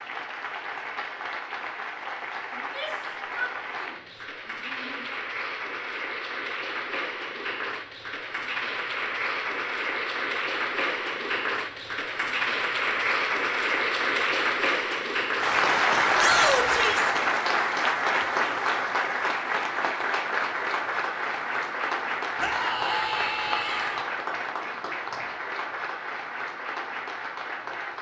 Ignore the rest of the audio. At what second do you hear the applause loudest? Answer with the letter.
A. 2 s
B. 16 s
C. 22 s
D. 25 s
B.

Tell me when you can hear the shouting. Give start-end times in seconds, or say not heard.
2.5-4.0, 4.5-5.2, 16.1-17.1, 22.4-24.1.